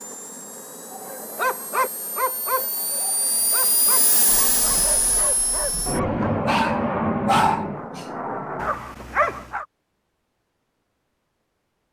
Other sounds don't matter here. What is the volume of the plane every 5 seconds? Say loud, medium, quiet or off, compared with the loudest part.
medium, loud, off.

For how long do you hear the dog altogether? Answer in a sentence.
You can hear the dog for 9 seconds altogether.